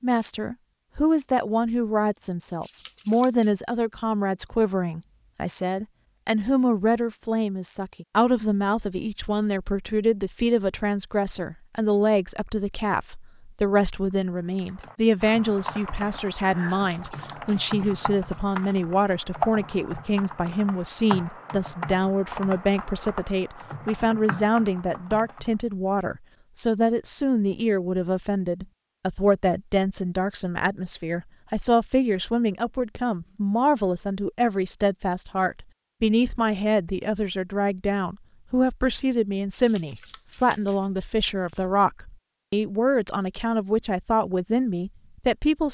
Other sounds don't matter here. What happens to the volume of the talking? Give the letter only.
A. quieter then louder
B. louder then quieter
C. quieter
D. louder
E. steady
E.